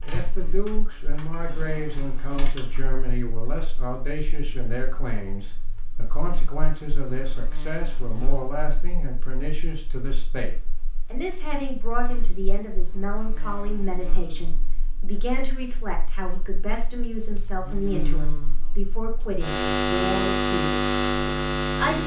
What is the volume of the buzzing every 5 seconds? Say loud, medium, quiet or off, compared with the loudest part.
quiet, quiet, quiet, medium, loud.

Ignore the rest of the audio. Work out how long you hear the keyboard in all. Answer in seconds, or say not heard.
3 s.